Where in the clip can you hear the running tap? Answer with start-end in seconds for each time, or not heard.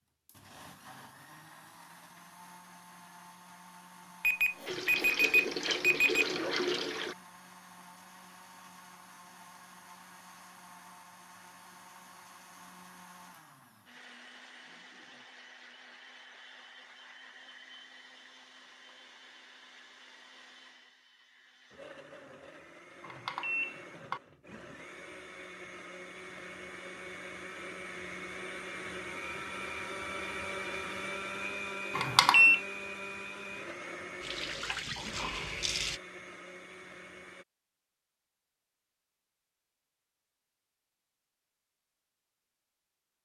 4.7-7.2, 34.2-36.0.